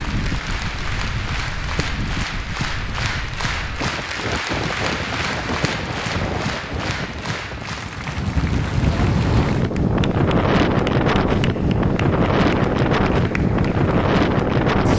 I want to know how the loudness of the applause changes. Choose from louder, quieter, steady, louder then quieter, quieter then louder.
quieter.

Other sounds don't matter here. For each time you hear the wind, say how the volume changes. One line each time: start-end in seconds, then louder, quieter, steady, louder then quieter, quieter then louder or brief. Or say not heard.
0.0-14.9 louder.